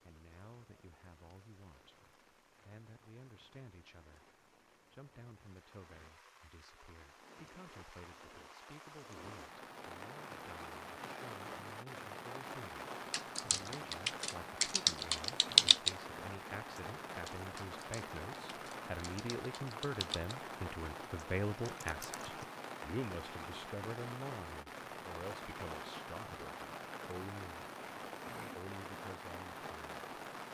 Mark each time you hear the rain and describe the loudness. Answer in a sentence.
You can hear the rain from 0.0 to 30.5 s, getting louder.